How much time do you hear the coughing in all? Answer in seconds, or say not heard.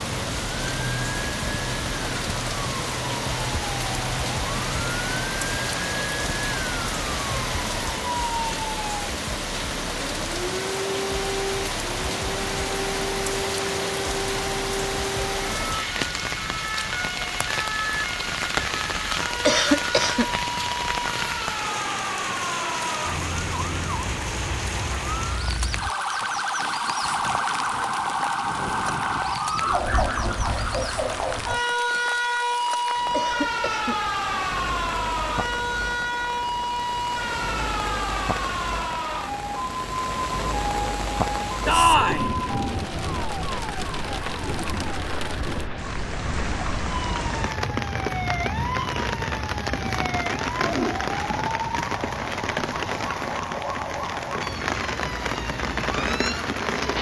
2 s.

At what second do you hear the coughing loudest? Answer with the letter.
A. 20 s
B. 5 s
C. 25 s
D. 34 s
A.